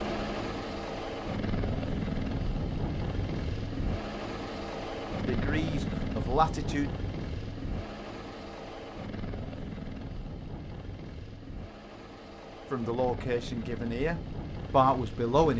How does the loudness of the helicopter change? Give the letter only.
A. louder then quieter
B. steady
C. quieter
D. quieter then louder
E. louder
C.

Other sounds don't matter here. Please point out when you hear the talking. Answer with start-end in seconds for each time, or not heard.
5.2-6.9, 12.7-15.5.